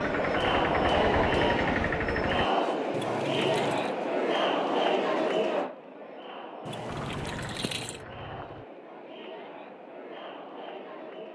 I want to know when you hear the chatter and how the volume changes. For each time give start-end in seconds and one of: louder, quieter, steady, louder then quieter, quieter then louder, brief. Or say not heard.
0.0-11.2 quieter.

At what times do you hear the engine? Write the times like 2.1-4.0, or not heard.
0.0-2.5, 6.8-8.7.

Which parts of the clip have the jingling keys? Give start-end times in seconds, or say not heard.
2.9-4.0, 6.7-8.0.